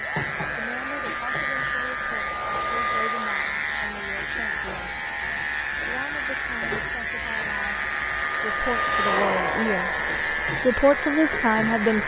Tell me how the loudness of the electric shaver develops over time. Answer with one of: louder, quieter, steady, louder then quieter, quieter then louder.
steady.